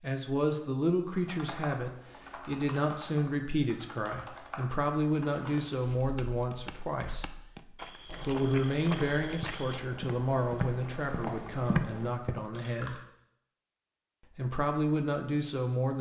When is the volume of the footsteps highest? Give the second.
12 s.